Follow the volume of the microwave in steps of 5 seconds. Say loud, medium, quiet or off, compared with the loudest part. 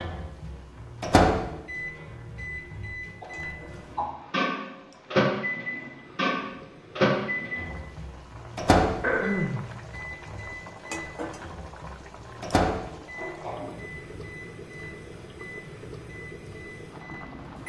loud, loud, medium, quiet.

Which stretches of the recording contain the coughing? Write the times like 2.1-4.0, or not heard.
3.2-4.2, 9.0-9.7, 13.2-13.8.